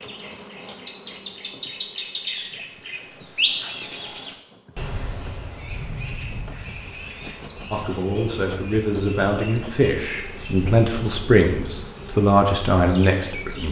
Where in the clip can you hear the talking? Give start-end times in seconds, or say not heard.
7.7-13.6.